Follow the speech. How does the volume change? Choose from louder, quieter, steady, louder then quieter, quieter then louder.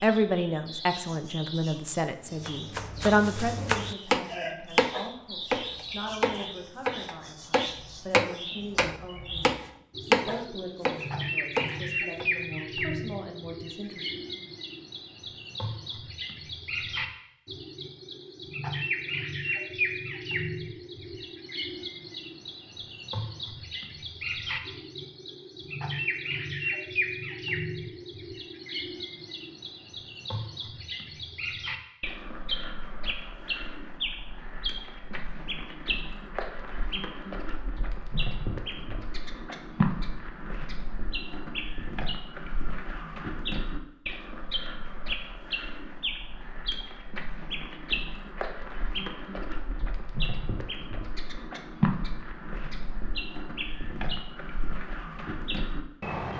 quieter.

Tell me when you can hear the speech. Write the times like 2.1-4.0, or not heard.
0.0-14.4.